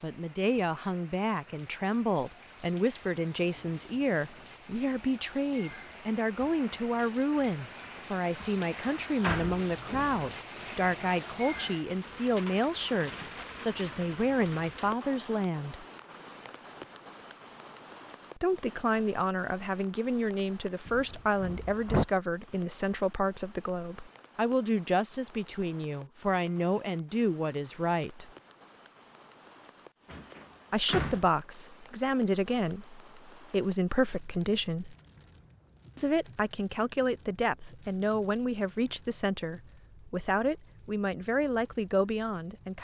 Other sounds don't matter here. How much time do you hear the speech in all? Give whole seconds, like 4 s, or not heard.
37 s.